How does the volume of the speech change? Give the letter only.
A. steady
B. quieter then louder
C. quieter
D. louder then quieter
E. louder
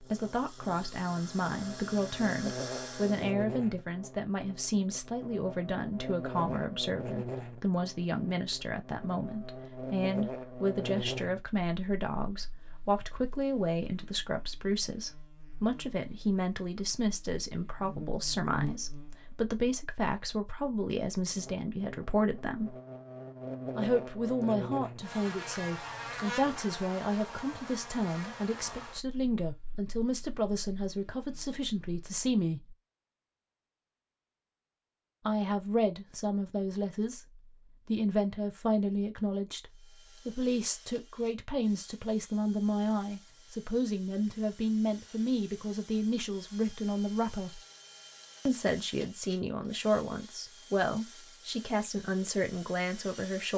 A.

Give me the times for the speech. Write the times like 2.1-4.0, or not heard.
0.0-22.8, 23.8-32.8, 35.2-47.6, 48.5-53.5.